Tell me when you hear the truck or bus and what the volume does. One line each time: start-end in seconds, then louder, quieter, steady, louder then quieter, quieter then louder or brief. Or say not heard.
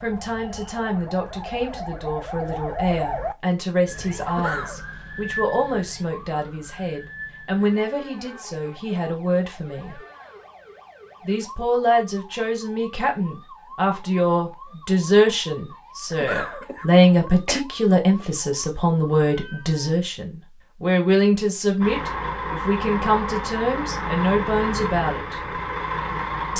21.8-26.5 steady.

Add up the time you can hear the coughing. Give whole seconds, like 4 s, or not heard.
2 s.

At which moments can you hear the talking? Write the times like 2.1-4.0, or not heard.
0.0-10.0, 11.2-25.6.